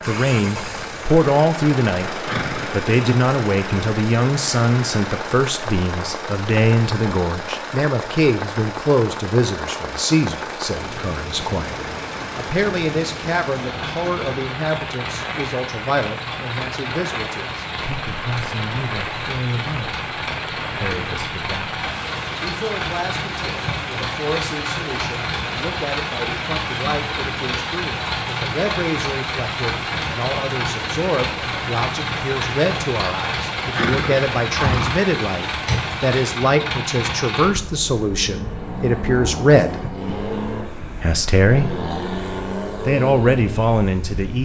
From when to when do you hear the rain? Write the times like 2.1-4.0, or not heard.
0.0-36.4.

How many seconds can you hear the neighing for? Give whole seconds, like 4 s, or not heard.
2 s.